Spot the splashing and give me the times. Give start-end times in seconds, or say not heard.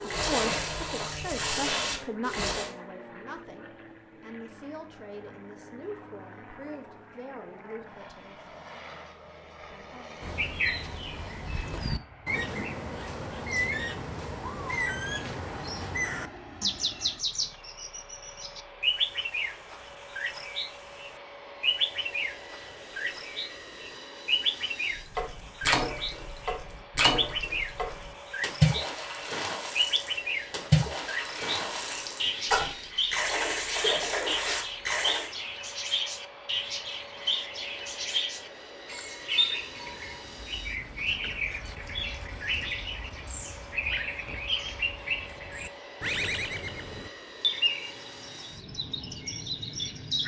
0.0-2.7, 25.0-35.3.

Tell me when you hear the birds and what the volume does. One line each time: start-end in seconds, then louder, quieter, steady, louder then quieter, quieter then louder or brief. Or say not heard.
10.2-50.2 steady.